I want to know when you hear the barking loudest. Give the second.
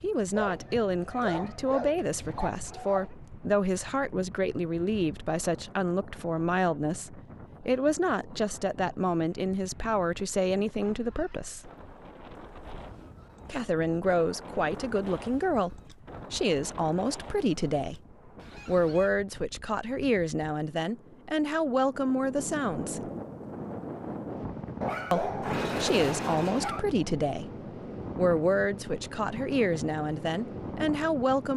26 s.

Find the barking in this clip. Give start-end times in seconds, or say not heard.
0.3-3.1, 24.8-26.8.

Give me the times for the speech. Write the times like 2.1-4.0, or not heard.
0.0-11.7, 13.4-18.0, 18.6-23.1, 25.1-27.5, 28.1-31.5.